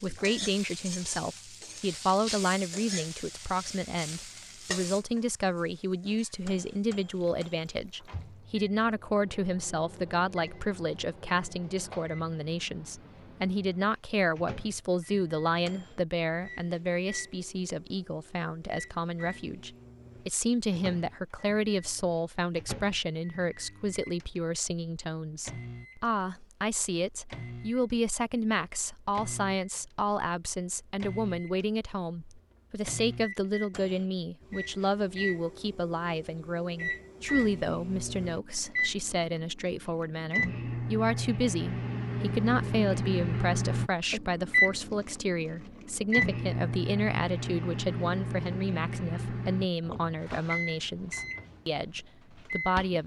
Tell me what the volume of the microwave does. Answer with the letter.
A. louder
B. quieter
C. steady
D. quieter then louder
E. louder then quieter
A.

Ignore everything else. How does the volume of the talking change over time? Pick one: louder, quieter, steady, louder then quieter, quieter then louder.
steady.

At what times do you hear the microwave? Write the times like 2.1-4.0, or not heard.
6.0-53.0.